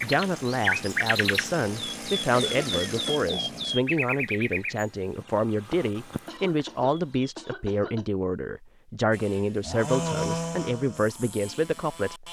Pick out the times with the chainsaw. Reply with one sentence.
The chainsaw can be heard from 0.0 to 3.8 s and from 9.1 to 12.2 s.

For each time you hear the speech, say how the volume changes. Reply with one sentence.
You can hear the speech from 0.0 to 12.2 s, at a steady volume.